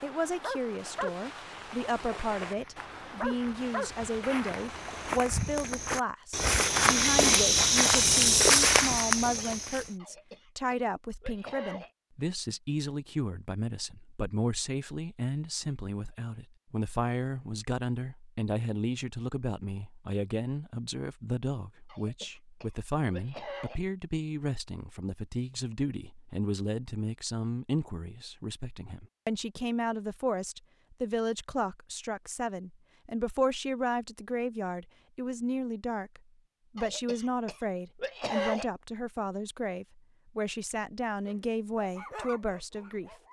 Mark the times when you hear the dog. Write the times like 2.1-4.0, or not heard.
0.0-5.2, 41.2-43.2.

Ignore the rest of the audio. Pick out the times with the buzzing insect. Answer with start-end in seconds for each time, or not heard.
not heard.